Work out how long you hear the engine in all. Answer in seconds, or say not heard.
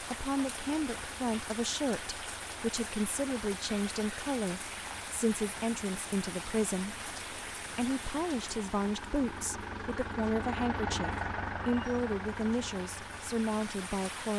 14 s.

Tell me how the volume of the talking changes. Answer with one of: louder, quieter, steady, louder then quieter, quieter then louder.
steady.